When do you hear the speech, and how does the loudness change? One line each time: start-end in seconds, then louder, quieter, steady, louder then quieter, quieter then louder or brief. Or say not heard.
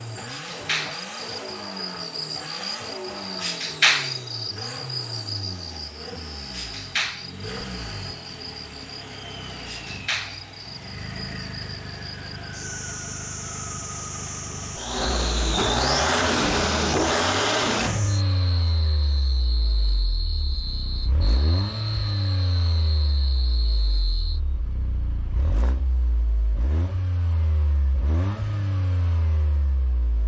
not heard.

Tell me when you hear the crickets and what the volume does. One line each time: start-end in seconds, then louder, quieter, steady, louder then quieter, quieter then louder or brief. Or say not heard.
0.0-24.4 quieter.